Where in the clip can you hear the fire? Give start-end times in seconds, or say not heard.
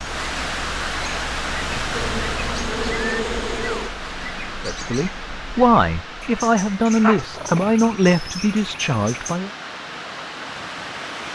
not heard.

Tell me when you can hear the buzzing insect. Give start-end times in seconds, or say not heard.
1.9-3.9.